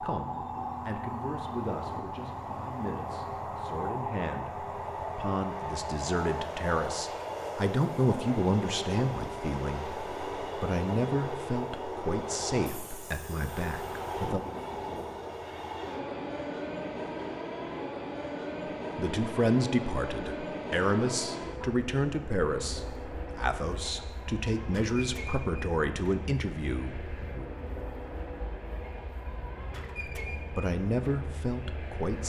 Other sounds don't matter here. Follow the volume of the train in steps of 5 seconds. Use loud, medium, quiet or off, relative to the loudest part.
loud, loud, loud, loud, loud, medium, medium.